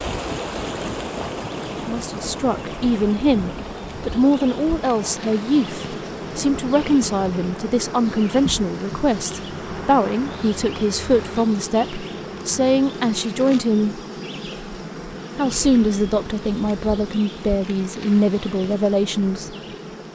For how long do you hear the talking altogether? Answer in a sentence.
You can hear the talking for 16 seconds altogether.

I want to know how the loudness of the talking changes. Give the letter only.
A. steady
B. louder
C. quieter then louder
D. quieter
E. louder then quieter
A.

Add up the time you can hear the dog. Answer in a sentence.
You can't hear the dog here.